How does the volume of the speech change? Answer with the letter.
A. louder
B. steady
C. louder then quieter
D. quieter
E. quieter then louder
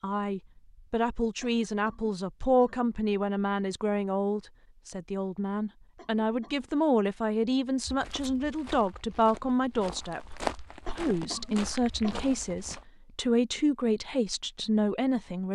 B.